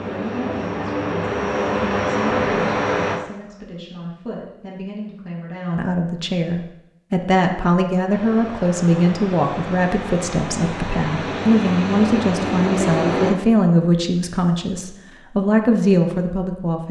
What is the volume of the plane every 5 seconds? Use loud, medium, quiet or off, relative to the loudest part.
loud, medium, loud, off.